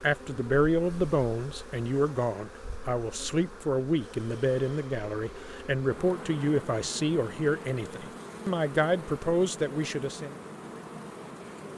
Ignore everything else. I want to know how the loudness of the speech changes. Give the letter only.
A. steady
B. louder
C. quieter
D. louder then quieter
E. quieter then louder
A.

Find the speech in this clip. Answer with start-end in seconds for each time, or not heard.
0.0-10.3.